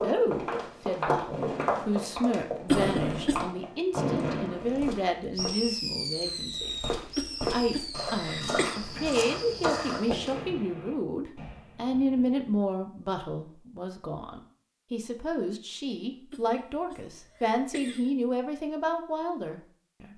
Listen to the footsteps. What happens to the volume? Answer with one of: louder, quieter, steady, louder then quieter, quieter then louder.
quieter then louder.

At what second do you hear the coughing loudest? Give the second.
3 s.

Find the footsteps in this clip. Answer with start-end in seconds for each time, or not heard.
0.0-10.3.